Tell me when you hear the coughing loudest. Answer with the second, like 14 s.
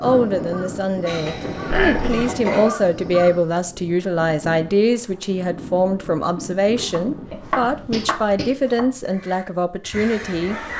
2 s.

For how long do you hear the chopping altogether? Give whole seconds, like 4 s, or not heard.
2 s.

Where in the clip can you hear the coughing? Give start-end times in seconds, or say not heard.
1.1-2.8, 7.2-8.5.